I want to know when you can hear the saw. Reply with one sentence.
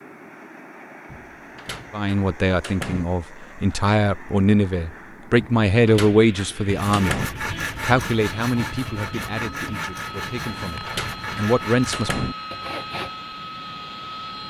The saw can be heard from 6.7 to 13.1 s.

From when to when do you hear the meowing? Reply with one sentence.
The meowing can't be heard in this clip.